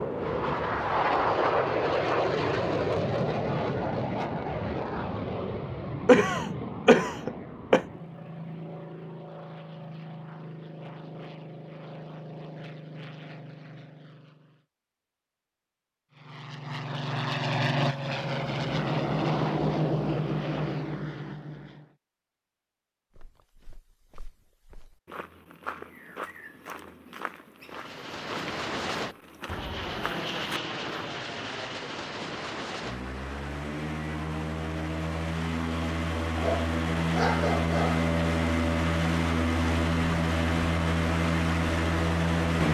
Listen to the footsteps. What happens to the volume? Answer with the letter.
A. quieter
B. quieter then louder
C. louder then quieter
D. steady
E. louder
E.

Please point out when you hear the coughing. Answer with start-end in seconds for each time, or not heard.
6.0-7.8.